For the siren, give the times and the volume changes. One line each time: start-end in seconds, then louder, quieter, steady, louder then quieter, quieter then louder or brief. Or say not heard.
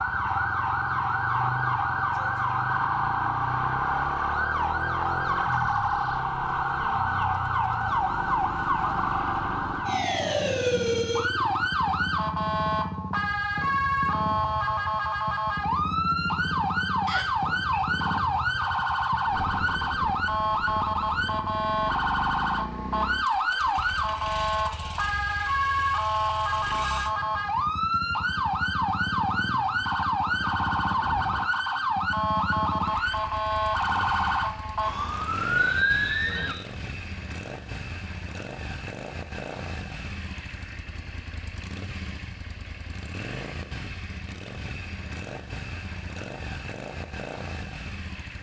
0.0-36.5 steady.